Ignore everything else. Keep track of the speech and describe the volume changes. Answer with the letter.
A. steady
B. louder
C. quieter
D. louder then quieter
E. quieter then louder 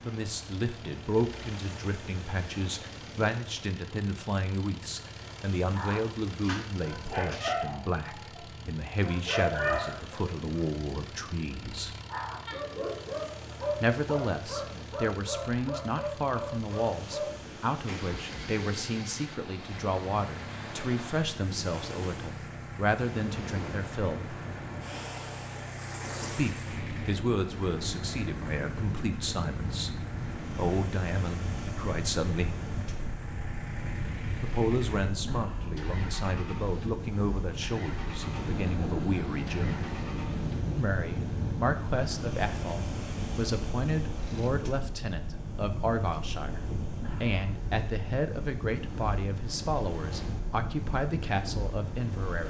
A.